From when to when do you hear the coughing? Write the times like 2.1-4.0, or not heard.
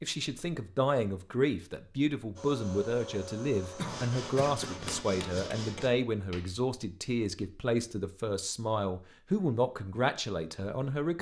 3.8-5.5.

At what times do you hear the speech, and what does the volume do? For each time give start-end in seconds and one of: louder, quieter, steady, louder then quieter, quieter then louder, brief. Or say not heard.
0.0-11.1 steady.